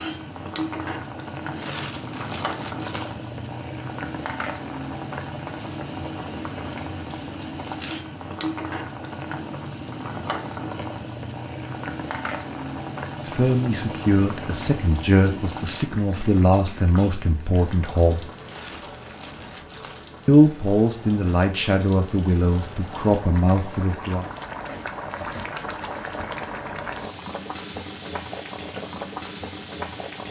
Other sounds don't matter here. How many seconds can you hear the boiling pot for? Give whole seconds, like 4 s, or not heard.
30 s.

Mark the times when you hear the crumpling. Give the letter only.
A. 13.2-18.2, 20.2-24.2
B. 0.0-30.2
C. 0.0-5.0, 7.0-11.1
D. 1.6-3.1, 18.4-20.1
D.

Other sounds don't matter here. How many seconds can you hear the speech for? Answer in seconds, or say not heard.
9 s.